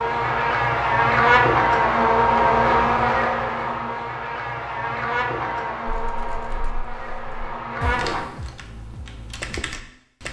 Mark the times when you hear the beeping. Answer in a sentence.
The beeping can't be heard in this clip.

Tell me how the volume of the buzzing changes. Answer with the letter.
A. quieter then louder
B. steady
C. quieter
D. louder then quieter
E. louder
C.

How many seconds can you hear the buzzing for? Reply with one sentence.
You can hear the buzzing for 8 seconds altogether.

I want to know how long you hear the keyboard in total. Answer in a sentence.
The keyboard can be heard for 4 seconds in total.